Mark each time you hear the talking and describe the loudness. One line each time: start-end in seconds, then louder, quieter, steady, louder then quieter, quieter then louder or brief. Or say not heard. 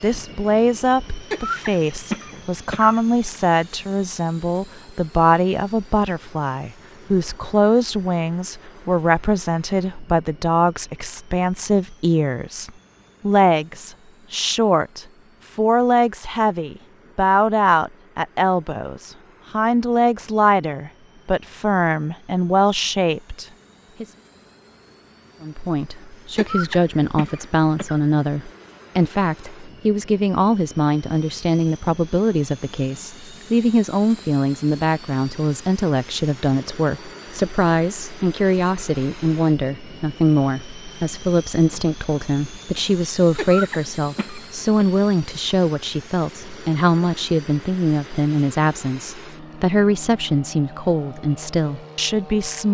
0.0-24.1 steady
25.4-52.7 steady.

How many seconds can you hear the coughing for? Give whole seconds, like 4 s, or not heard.
5 s.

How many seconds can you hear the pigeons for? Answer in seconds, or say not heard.
not heard.